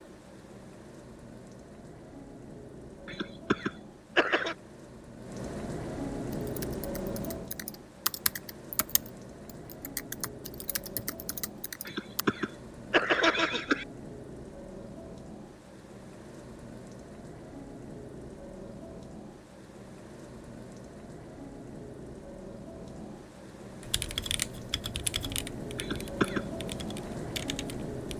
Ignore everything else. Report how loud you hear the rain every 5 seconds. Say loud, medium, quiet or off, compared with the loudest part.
medium, loud, medium, medium, medium, loud.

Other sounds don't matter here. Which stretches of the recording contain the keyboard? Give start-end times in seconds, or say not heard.
6.3-12.2, 23.8-28.1.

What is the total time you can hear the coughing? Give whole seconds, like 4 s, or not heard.
4 s.